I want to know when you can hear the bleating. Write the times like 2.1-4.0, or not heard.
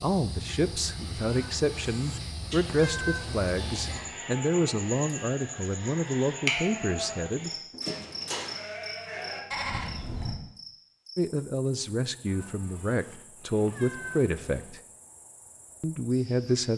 3.4-10.3.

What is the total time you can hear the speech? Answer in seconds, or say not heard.
12 s.